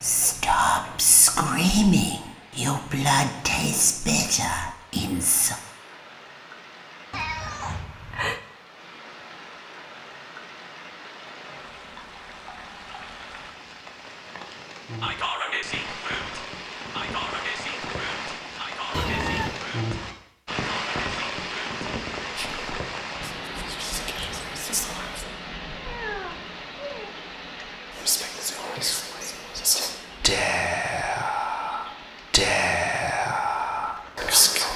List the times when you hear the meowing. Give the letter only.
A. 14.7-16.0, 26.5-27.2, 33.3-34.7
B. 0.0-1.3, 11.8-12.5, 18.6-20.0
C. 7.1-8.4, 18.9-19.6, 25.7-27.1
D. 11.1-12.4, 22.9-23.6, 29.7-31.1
C.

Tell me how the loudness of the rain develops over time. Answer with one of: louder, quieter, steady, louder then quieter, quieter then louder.
louder then quieter.